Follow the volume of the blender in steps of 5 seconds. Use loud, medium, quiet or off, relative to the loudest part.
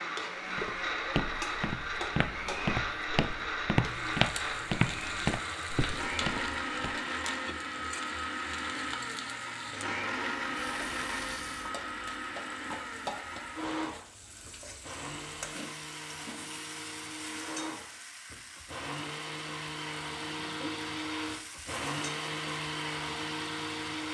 loud, loud, loud, medium, loud.